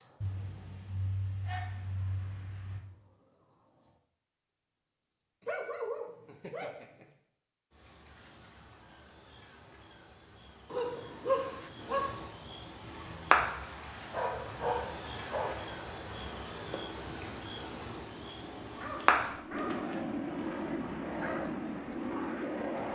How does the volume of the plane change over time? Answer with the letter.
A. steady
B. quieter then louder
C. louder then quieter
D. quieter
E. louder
E.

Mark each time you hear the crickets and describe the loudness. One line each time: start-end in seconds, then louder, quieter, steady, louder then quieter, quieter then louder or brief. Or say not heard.
0.0-22.9 louder.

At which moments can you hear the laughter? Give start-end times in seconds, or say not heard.
not heard.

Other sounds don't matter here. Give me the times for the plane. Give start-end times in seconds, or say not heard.
12.8-22.9.